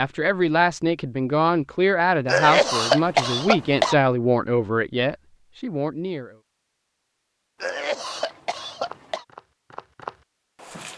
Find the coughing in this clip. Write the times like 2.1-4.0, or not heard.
2.2-4.0, 7.6-9.2.